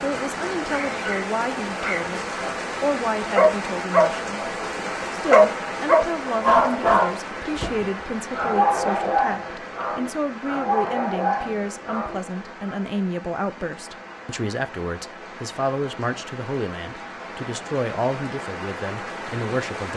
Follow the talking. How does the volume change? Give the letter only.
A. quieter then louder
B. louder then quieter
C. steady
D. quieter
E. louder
C.